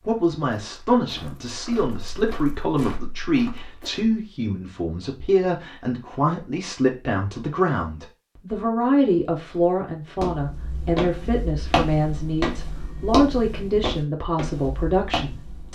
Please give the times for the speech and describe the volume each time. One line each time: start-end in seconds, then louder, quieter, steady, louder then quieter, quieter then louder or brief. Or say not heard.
0.0-15.7 steady.